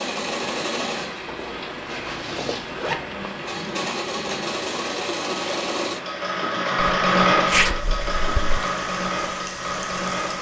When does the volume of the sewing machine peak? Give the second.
7 s.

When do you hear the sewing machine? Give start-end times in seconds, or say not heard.
0.0-10.3.